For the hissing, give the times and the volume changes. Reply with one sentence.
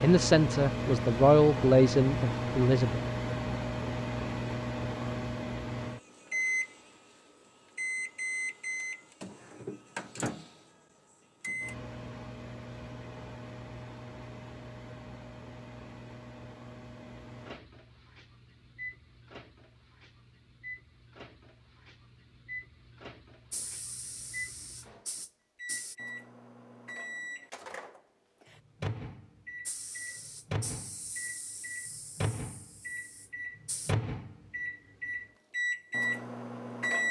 You can hear the hissing briefly from 23.5 to 25.9 s; and from 29.6 to 34.0 s, getting quieter.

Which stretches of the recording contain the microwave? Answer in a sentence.
The microwave can be heard from 0.0 to 6.8 s and from 7.8 to 37.0 s.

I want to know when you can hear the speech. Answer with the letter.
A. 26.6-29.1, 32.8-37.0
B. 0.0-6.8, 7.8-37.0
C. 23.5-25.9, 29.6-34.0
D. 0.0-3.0
D.